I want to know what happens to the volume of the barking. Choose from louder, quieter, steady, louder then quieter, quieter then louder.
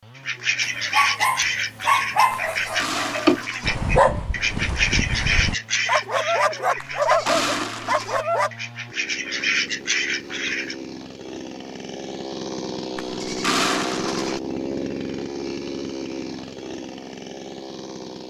quieter then louder.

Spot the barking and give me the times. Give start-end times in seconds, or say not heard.
0.6-8.5.